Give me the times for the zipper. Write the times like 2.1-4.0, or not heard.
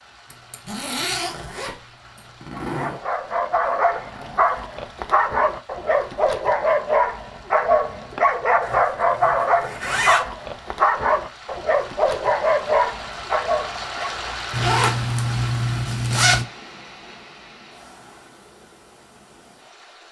0.3-3.0, 8.6-10.2, 14.5-16.4.